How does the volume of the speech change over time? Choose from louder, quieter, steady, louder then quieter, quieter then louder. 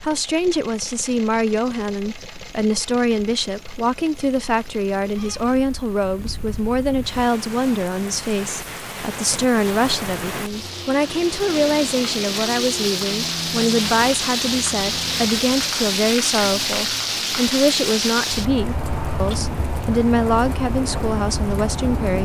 steady.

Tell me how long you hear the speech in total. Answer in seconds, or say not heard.
22 s.